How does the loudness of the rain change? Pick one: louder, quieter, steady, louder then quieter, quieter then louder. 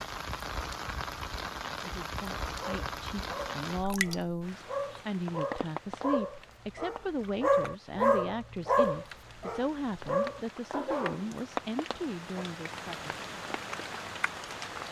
quieter then louder.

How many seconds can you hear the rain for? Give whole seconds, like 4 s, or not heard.
15 s.